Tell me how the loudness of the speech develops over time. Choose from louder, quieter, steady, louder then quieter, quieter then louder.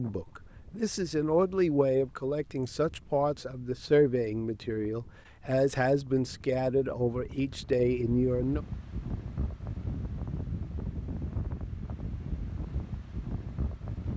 steady.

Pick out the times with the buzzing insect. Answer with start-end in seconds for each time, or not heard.
not heard.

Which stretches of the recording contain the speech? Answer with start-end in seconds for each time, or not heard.
0.0-8.6.